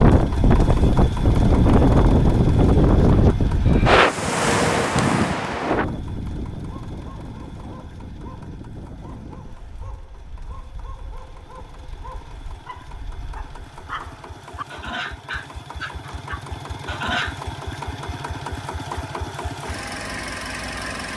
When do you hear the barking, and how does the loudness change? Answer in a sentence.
You can hear the barking from 6.6 to 17.4 s, getting louder.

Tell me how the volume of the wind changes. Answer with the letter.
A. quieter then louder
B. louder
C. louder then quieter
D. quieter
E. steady
D.